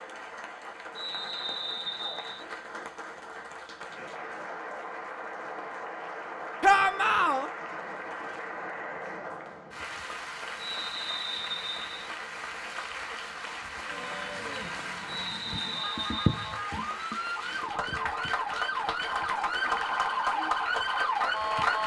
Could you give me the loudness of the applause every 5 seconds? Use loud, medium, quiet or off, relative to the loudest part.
medium, medium, medium, loud, loud.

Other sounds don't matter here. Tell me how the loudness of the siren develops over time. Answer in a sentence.
The loudness of the siren goes up.